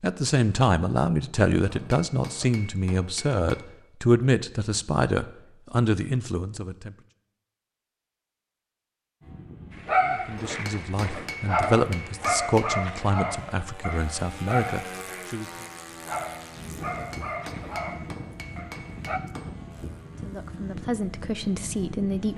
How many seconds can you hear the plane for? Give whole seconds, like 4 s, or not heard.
13 s.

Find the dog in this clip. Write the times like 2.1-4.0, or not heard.
9.8-19.2.